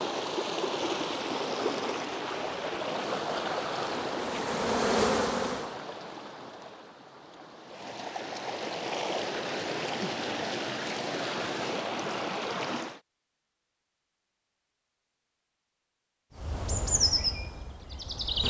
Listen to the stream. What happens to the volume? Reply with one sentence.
The loudness of the stream goes down, then up.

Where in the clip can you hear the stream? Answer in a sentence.
The stream can be heard from 0.0 to 13.0 s.